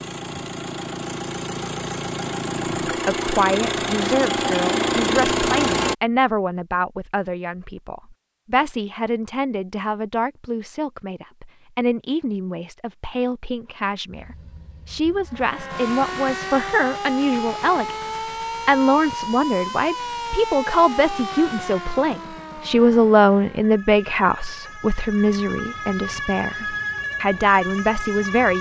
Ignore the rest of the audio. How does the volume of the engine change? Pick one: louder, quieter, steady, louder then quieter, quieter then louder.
louder.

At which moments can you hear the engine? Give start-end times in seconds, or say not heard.
0.0-6.0.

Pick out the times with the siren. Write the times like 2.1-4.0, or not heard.
15.2-28.5.